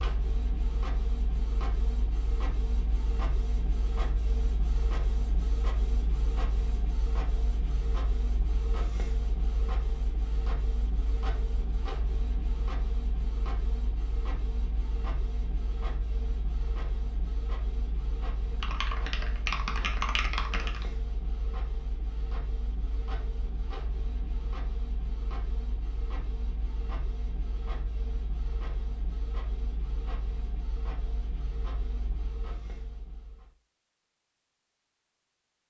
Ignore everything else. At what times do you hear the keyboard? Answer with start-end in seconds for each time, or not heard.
18.5-20.9.